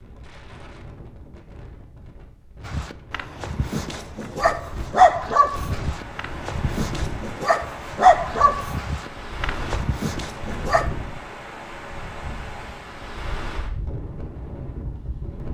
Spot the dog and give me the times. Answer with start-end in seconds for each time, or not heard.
2.6-10.8.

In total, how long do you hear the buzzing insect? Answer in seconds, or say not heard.
not heard.